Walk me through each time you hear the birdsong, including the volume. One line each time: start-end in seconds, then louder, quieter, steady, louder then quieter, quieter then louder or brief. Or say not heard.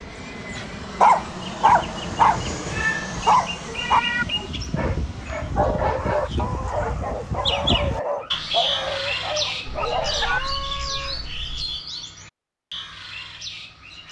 0.0-14.0 louder then quieter.